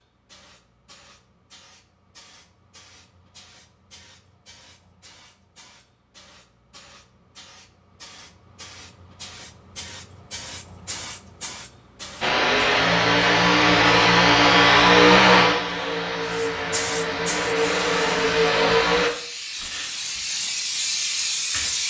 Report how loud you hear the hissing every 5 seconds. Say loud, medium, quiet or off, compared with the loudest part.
quiet, quiet, quiet, medium, loud.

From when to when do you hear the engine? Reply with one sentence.
You can hear the engine from 12.2 to 19.1 s.